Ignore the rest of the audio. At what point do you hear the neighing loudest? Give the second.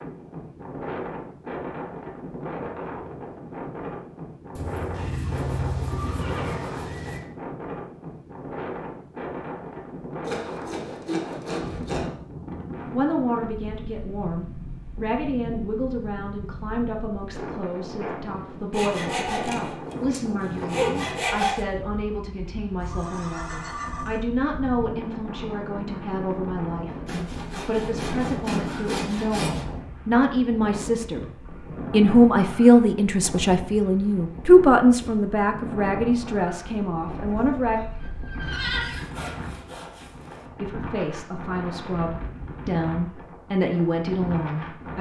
39 s.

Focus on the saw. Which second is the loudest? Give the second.
21 s.